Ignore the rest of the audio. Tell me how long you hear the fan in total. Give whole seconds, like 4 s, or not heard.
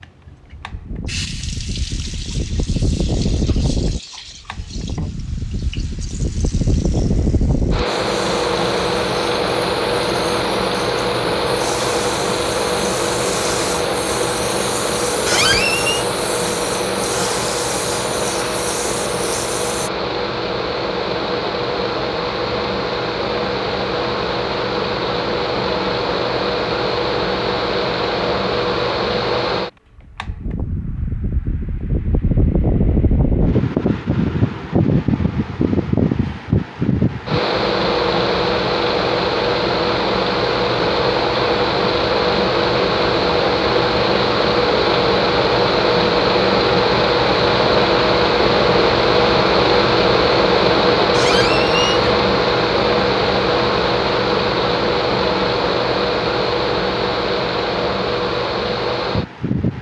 60 s.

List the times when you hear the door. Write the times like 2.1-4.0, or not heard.
15.2-16.1, 51.1-52.0.